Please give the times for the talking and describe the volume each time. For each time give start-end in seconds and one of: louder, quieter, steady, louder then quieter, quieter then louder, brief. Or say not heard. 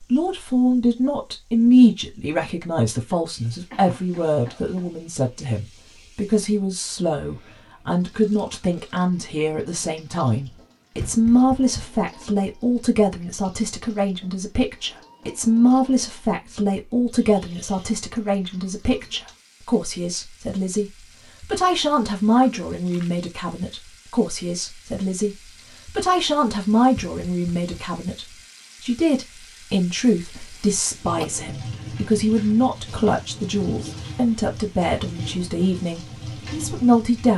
0.0-37.3 steady.